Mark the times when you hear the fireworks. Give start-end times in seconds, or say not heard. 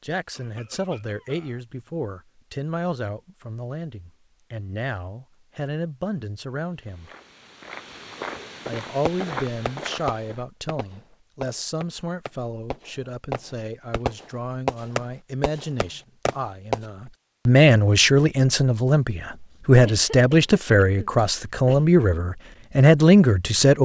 9.1-16.8.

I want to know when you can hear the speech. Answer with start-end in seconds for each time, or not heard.
0.0-7.1, 8.7-23.8.